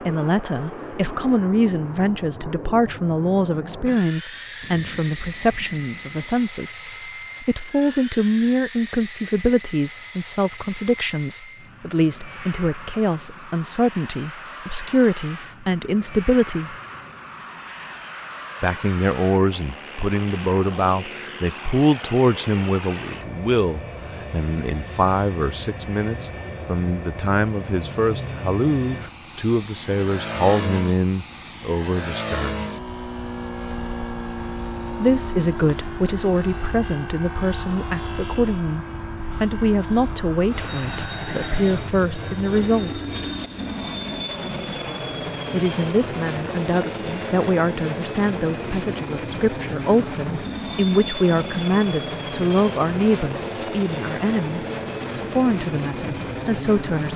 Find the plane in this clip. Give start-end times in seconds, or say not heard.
0.0-57.1.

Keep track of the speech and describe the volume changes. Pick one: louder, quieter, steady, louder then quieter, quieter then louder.
steady.